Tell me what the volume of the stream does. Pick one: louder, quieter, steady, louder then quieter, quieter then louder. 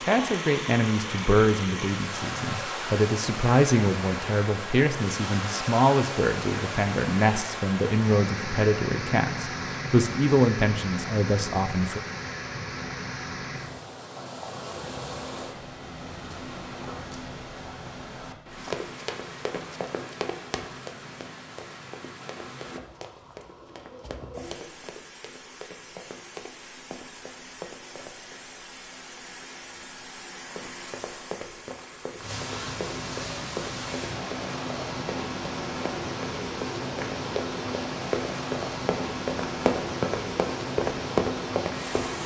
quieter then louder.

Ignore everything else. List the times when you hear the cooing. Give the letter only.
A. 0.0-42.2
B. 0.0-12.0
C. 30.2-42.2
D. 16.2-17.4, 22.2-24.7
D.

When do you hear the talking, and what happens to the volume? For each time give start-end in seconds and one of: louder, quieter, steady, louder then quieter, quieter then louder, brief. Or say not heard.
0.0-12.0 steady.